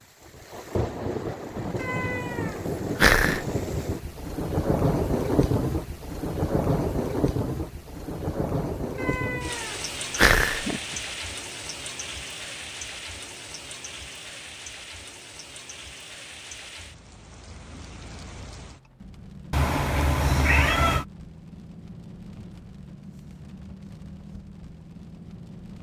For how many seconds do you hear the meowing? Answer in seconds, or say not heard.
5 s.